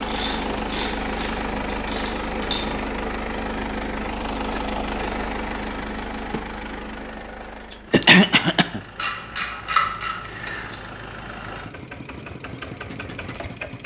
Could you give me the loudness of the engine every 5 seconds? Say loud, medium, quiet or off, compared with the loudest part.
loud, medium, medium.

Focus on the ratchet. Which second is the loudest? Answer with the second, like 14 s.
10 s.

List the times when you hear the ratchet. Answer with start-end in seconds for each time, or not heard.
0.0-2.8, 8.9-10.8.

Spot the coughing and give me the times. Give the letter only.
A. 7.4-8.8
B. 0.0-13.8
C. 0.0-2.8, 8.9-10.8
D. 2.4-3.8
A.